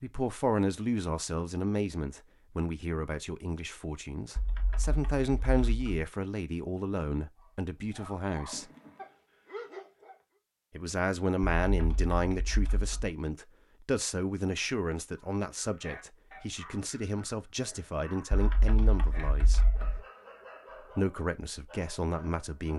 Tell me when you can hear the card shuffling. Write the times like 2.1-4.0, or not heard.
8.5-9.2.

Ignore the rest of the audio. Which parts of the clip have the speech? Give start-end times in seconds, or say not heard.
0.0-8.7, 10.8-19.6, 20.9-22.7.